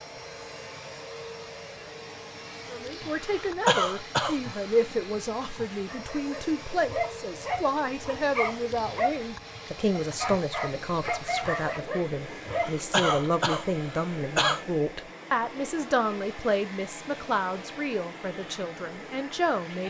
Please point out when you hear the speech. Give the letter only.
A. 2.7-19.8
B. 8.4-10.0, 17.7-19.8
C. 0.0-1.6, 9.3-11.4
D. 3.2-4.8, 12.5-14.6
A.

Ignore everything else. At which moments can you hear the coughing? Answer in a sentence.
You can hear the coughing from 3.2 to 4.8 s and from 12.5 to 14.6 s.